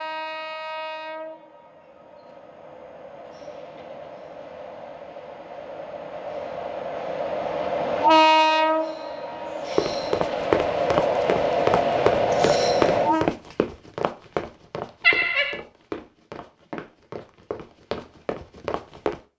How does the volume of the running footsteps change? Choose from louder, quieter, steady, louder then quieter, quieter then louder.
quieter.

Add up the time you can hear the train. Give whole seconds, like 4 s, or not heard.
13 s.